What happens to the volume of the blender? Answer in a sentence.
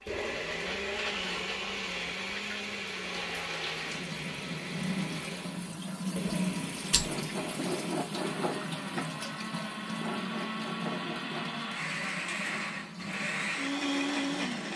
The loudness of the blender goes down, then up.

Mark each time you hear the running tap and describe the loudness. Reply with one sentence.
You can hear the running tap from 0.0 to 14.7 s, getting louder then quieter.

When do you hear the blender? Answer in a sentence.
You can hear the blender from 0.0 to 14.7 s.